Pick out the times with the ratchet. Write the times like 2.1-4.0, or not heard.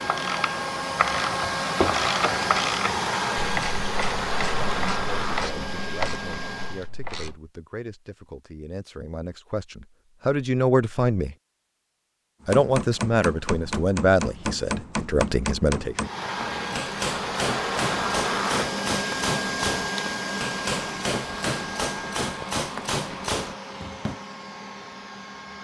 0.0-7.4.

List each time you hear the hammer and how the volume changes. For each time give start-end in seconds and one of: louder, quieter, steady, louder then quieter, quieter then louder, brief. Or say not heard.
12.4-24.2 steady.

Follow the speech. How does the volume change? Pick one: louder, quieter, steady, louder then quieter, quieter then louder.
louder.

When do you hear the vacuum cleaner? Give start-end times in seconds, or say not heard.
0.0-6.9, 15.9-25.5.